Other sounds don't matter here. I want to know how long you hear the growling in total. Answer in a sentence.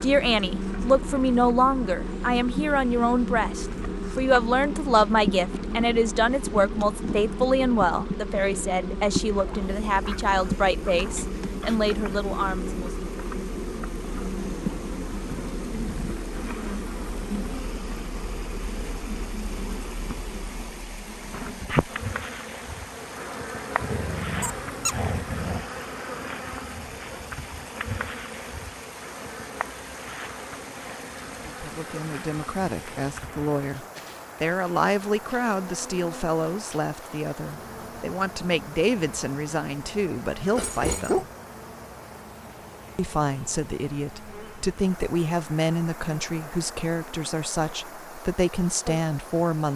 You can hear the growling for 5 seconds altogether.